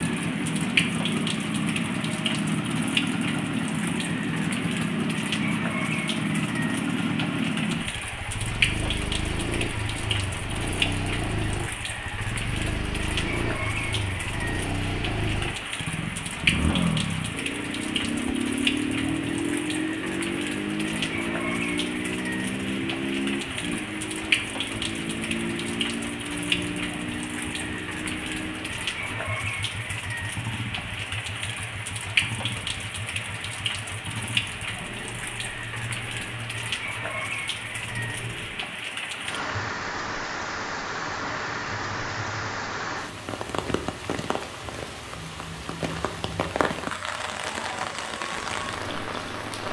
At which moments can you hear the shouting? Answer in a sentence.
The shouting can't be heard in this clip.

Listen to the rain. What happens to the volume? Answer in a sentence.
The volume of the rain stays about the same.